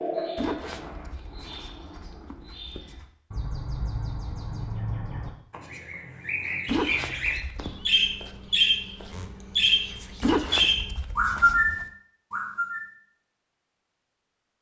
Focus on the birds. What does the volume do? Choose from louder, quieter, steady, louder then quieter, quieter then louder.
louder.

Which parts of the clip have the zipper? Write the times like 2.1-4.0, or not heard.
0.3-3.1, 6.7-7.7, 10.2-11.8.